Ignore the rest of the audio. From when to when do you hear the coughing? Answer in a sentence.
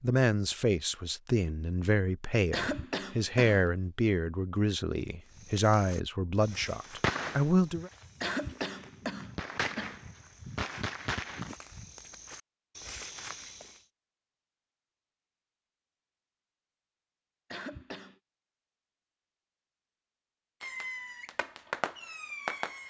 You can hear the coughing from 2.5 to 3.7 s, from 8.2 to 9.9 s and from 17.5 to 18.1 s.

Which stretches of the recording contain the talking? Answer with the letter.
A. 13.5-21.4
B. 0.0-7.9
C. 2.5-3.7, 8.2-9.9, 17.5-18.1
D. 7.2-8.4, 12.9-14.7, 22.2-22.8
B.